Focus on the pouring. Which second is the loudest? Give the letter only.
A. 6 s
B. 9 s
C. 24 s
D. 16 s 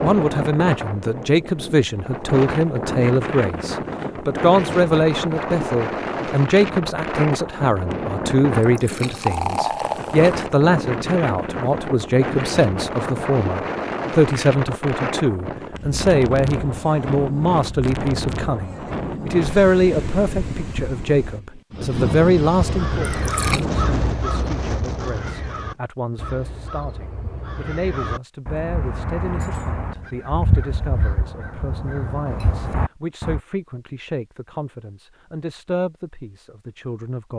B.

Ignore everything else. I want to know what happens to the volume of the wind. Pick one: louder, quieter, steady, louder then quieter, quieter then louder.
steady.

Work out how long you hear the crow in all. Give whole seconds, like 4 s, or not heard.
11 s.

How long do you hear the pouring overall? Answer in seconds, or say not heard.
2 s.